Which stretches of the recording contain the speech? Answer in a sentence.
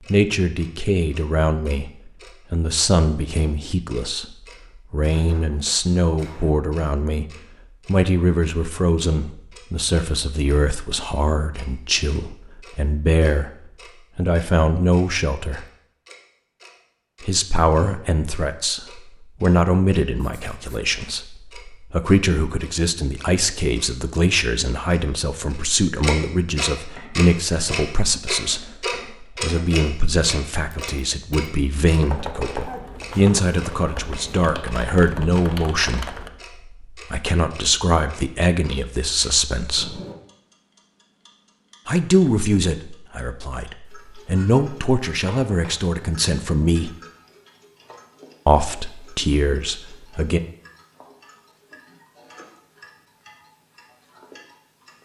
You can hear the speech from 0.1 to 7.2 s, from 7.8 to 13.5 s, from 14.2 to 15.7 s, from 17.2 to 40.0 s, from 41.9 to 46.9 s and from 48.5 to 50.4 s.